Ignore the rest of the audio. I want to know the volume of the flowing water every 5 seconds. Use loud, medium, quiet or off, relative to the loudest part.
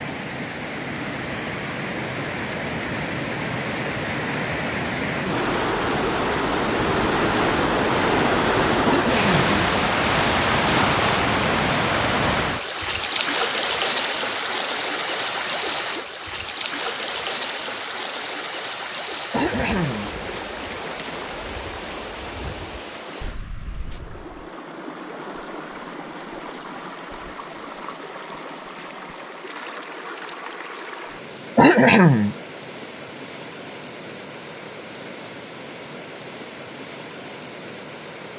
medium, loud, loud, medium, quiet, quiet, quiet, quiet.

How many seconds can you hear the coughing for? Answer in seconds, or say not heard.
2 s.